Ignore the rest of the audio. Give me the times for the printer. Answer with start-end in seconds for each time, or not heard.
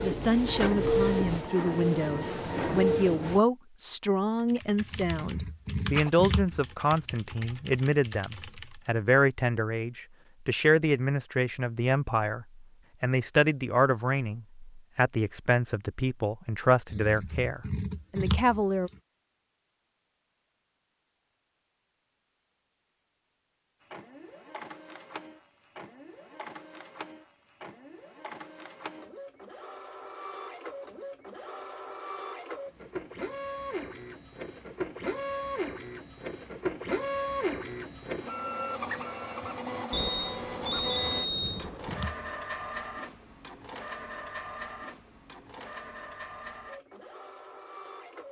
0.0-3.4, 23.8-48.2.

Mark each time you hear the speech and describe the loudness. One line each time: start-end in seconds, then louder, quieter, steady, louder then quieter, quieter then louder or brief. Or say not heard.
0.0-18.9 steady.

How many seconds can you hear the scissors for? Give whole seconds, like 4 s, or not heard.
5 s.